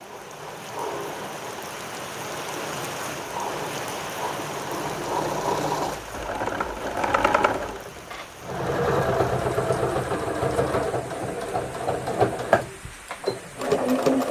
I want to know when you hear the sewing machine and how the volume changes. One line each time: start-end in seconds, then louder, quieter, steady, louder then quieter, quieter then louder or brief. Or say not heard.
0.0-14.2 louder.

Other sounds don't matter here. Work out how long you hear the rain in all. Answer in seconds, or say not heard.
14 s.